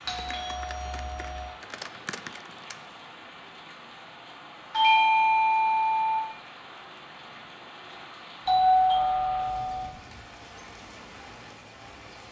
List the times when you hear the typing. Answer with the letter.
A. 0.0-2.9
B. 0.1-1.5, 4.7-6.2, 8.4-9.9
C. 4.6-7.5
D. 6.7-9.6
A.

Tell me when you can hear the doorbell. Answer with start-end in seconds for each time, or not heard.
0.1-1.5, 4.7-6.2, 8.4-9.9.